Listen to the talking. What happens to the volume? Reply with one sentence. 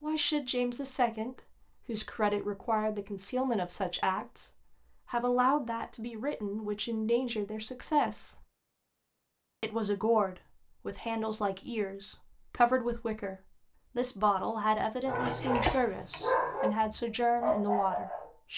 The loudness of the talking stays about the same.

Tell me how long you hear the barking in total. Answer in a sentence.
You can hear the barking for 3 seconds altogether.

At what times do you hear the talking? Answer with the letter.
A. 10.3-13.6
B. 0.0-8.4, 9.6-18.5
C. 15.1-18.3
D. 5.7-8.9
B.